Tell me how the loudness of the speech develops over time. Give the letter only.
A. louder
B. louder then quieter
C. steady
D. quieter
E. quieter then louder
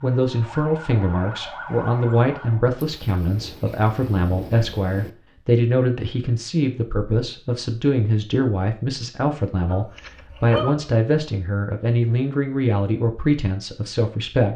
C.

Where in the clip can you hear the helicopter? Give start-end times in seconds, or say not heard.
not heard.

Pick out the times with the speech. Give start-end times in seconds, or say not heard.
0.0-14.5.